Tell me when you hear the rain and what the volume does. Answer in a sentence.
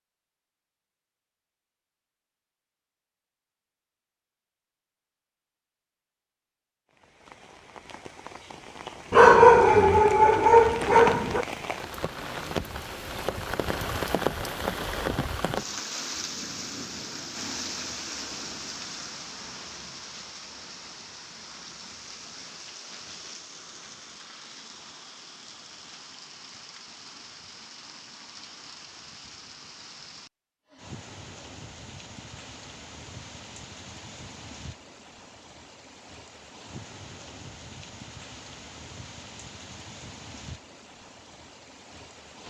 The rain can be heard from 6.9 to 42.4 s, getting quieter.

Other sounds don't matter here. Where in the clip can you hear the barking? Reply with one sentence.
You can hear the barking from 9.1 to 11.4 s.